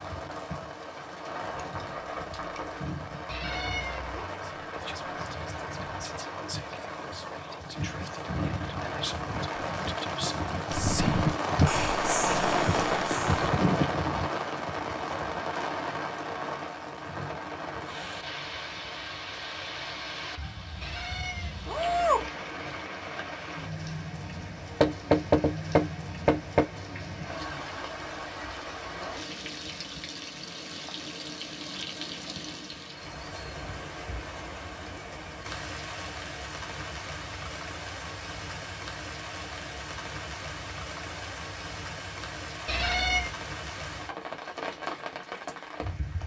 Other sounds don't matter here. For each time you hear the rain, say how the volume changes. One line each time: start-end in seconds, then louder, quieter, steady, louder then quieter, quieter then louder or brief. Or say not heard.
0.0-46.2 louder then quieter.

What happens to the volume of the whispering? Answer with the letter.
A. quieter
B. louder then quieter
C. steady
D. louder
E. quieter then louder
D.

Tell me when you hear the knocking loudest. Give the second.
25 s.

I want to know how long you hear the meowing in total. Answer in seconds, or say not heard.
3 s.